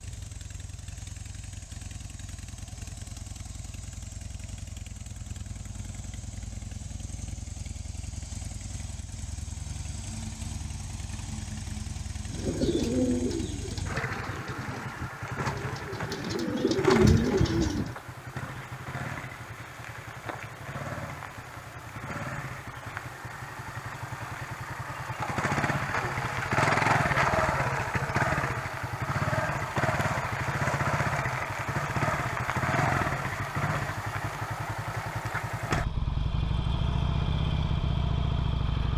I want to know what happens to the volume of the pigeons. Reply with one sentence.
The loudness of the pigeons goes down, then up.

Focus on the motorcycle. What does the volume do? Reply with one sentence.
The loudness of the motorcycle goes up.